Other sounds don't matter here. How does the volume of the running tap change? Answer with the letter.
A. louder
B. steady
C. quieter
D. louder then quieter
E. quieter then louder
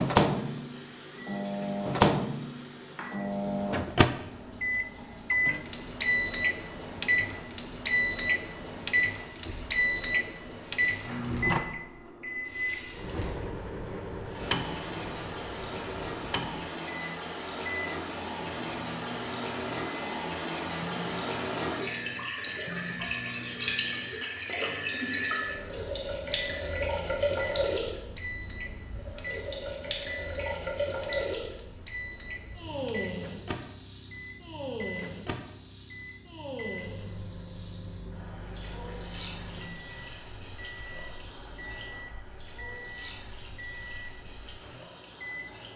D.